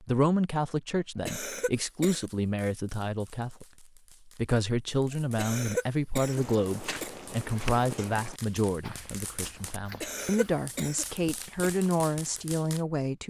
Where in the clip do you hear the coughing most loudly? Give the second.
6 s.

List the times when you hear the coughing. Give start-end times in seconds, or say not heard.
1.2-2.3, 5.3-7.1, 10.0-11.7.